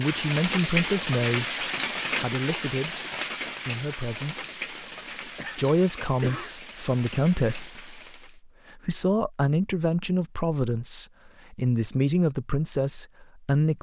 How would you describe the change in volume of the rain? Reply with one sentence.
The loudness of the rain goes down.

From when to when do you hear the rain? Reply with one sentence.
The rain can be heard from 0.0 to 8.4 s.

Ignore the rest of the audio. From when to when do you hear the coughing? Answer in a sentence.
The coughing can be heard from 5.3 to 6.6 s.